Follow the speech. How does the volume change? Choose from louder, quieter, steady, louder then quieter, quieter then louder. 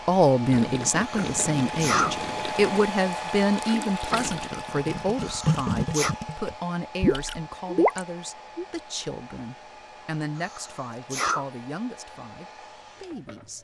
quieter.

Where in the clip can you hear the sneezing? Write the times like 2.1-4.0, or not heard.
1.1-2.1, 5.2-6.2, 10.3-11.4.